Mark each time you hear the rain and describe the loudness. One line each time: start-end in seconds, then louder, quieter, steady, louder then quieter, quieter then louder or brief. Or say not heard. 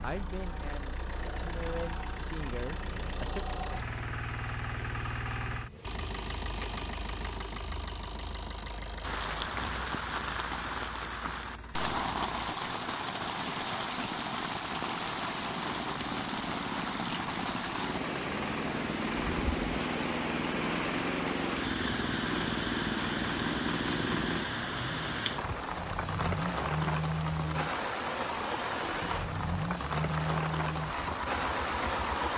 9.0-32.3 steady.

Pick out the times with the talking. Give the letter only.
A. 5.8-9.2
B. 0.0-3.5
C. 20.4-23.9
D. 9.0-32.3
B.